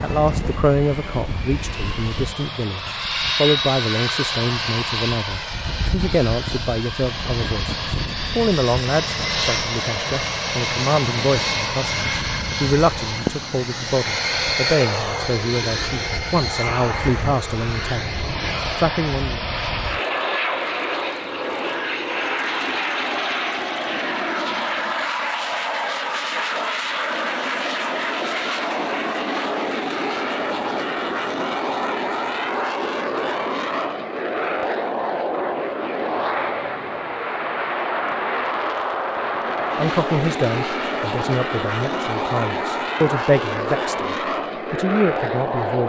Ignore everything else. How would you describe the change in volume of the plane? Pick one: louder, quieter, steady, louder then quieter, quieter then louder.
steady.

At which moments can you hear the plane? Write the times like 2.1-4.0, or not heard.
0.0-45.8.